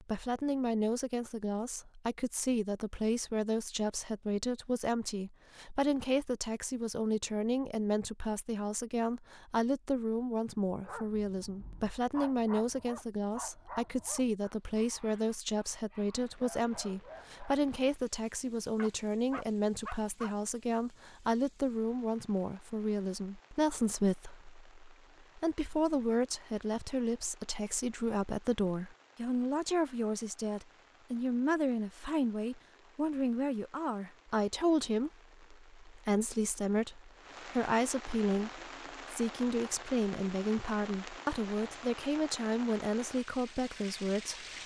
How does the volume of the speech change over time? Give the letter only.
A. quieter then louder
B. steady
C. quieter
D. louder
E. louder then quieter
B.